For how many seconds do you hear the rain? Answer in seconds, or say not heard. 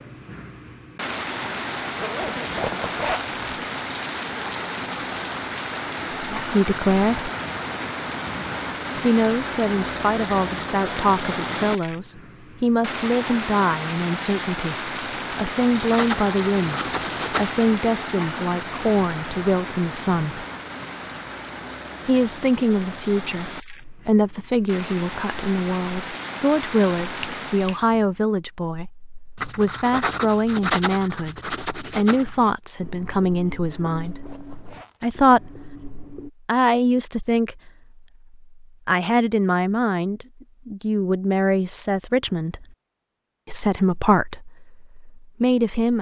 28 s.